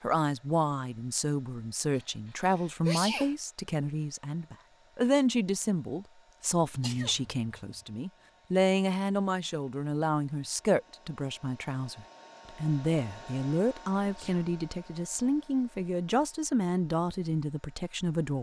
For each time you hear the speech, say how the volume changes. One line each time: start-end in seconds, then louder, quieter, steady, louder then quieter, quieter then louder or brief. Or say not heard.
0.0-18.3 steady.